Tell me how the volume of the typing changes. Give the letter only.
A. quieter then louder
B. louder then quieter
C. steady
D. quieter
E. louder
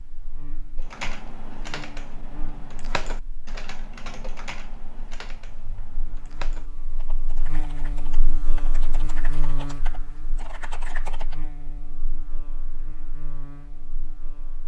A.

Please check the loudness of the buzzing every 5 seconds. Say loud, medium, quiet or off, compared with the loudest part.
medium, loud, medium.